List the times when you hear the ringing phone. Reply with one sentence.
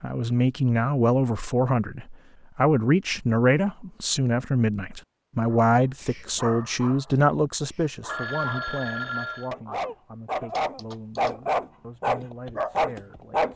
You can hear the ringing phone from 8.1 to 9.5 s.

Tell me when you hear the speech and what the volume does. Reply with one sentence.
The speech can be heard from 0.0 to 13.5 s, getting quieter.